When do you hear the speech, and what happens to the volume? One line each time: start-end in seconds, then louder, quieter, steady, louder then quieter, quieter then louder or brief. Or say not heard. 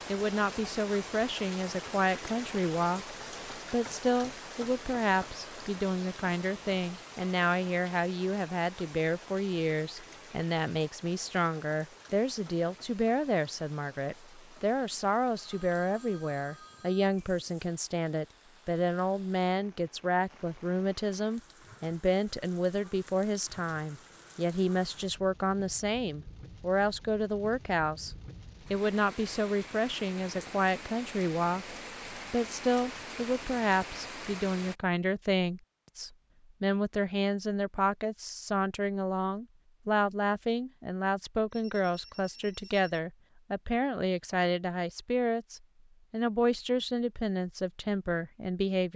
0.1-48.9 steady.